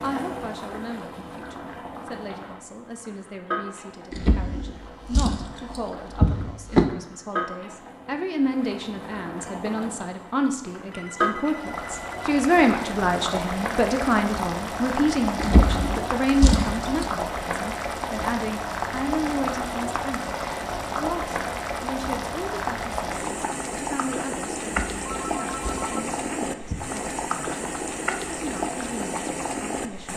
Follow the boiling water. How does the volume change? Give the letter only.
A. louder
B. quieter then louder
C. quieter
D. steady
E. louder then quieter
A.